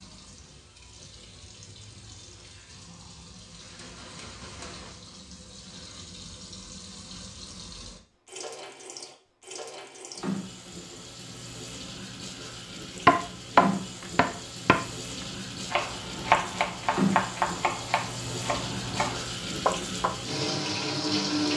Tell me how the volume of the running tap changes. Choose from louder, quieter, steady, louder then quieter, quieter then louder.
louder.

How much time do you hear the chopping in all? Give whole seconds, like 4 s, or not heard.
7 s.